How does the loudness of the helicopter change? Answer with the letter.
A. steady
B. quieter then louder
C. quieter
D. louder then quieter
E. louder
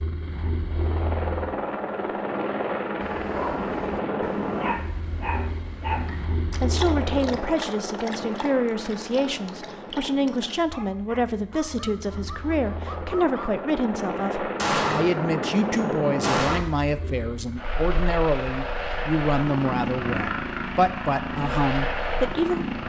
B.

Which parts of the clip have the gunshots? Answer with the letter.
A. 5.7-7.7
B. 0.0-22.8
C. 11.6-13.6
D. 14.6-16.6
D.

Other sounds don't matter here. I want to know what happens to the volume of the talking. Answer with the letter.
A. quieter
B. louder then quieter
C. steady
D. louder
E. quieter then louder
C.